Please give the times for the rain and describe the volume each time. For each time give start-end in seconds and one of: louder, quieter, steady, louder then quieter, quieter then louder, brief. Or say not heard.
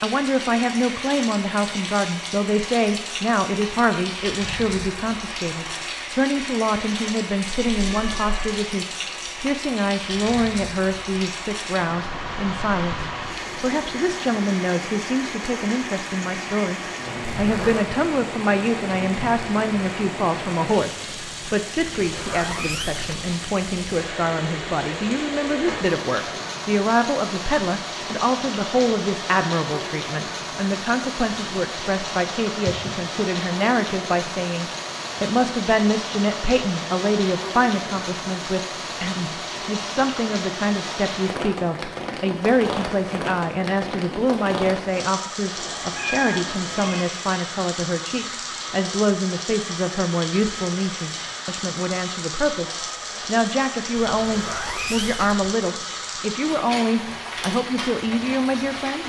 0.0-59.0 steady.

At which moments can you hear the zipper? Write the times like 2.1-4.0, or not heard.
17.4-17.9, 21.9-23.3, 54.0-55.5.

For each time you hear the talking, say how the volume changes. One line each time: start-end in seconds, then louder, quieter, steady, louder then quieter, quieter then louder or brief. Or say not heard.
0.0-59.0 steady.